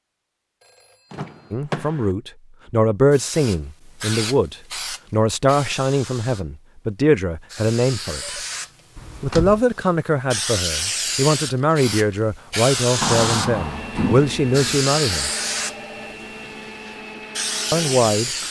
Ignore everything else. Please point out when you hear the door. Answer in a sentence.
The door can be heard from 1.1 to 2.1 s, from 8.9 to 9.7 s and from 13.0 to 14.8 s.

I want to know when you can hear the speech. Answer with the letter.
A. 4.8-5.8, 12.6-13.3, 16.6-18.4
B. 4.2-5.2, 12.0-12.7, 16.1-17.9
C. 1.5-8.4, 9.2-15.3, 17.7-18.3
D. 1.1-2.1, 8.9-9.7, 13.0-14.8
C.